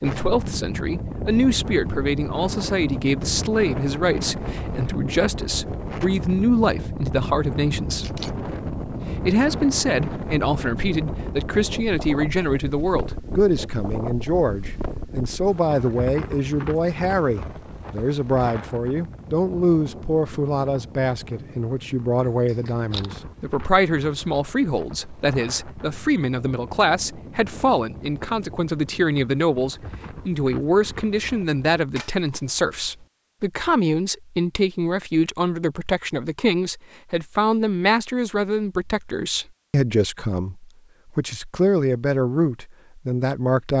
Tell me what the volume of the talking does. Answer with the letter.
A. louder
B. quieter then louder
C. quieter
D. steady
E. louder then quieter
D.